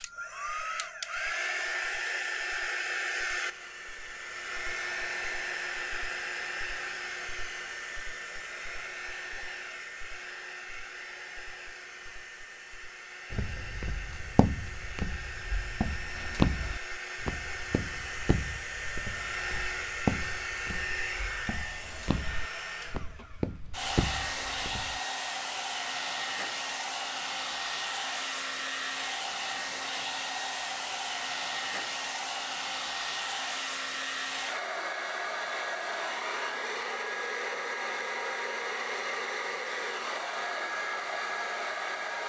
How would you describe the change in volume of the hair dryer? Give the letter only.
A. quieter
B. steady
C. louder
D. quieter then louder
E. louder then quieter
D.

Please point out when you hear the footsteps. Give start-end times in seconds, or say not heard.
13.3-25.0.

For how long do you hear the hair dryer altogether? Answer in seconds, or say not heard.
42 s.